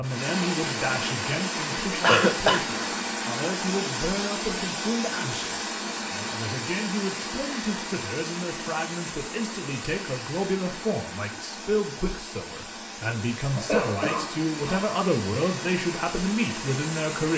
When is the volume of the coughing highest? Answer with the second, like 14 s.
2 s.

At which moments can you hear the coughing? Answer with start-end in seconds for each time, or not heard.
2.0-2.8, 13.5-14.8.